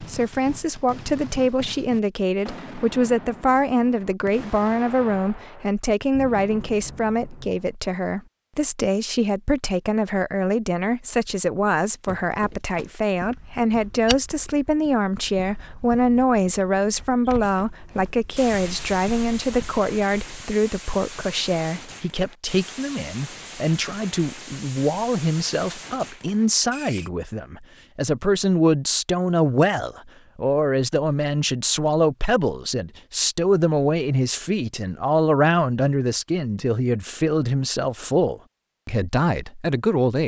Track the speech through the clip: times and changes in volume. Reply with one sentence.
You can hear the speech from 0.0 to 40.2 s, at a steady volume.